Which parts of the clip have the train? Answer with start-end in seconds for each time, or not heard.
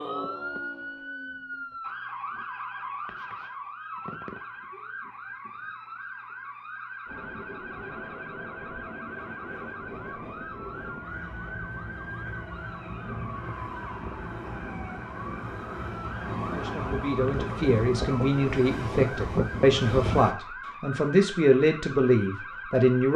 7.0-20.4.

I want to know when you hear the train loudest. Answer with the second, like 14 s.
20 s.